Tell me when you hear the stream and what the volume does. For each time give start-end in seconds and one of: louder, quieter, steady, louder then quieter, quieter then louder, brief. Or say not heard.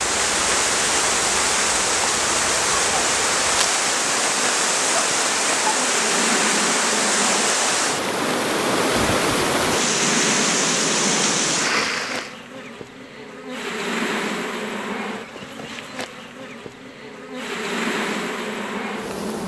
0.0-12.3 steady.